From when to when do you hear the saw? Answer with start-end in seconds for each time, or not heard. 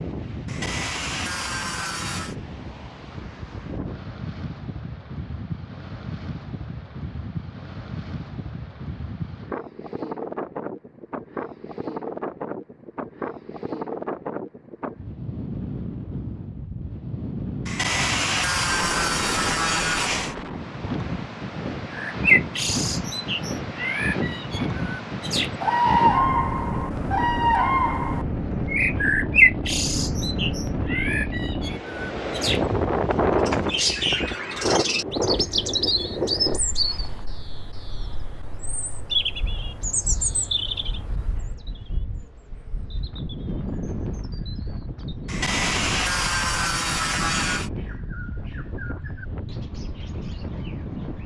0.5-2.4, 17.6-20.4, 45.2-47.7.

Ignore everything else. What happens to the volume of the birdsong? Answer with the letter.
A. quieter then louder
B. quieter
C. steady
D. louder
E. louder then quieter
B.